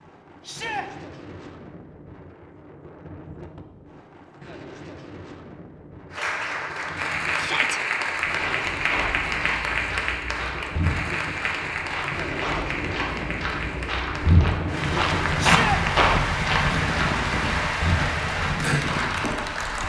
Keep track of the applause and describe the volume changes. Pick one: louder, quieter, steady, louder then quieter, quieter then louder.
quieter then louder.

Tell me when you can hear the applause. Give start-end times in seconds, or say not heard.
6.1-19.8.